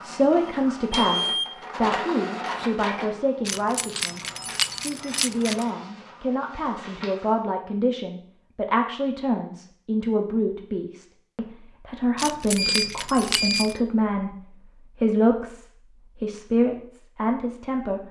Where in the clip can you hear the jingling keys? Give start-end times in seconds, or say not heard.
3.5-5.7, 12.2-13.8.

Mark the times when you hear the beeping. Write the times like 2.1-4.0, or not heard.
0.5-1.5, 12.6-13.8.